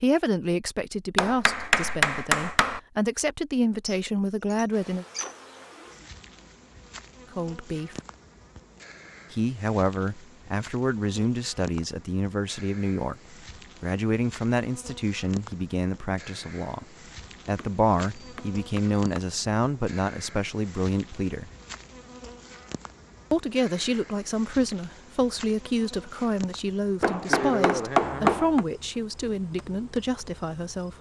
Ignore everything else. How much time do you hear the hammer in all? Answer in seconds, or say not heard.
5 s.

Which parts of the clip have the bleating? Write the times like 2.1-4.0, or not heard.
not heard.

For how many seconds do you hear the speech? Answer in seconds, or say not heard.
25 s.